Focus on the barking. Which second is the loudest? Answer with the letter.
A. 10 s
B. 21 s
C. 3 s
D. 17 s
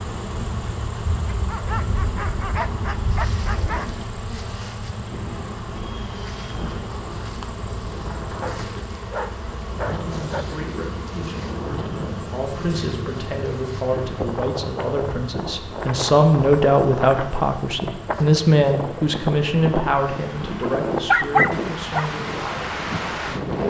B.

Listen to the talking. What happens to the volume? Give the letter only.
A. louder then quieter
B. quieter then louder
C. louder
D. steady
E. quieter
A.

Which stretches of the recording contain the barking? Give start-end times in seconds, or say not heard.
1.2-3.9, 8.4-10.4, 20.6-22.1.